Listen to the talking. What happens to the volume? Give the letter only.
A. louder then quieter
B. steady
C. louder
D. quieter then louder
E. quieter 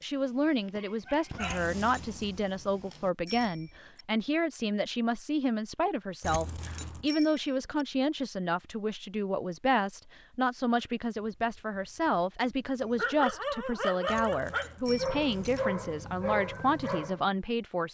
B.